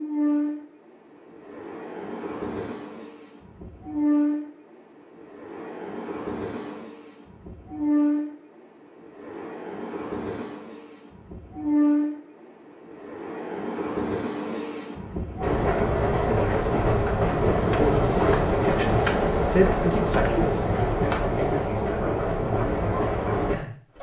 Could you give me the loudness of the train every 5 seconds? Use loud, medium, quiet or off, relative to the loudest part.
medium, medium, medium, loud, loud.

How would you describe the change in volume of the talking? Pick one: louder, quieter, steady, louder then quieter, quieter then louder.
louder then quieter.